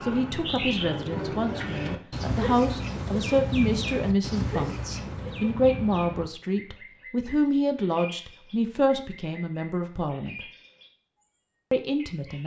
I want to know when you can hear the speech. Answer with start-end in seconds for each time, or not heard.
0.0-10.4, 11.7-12.4.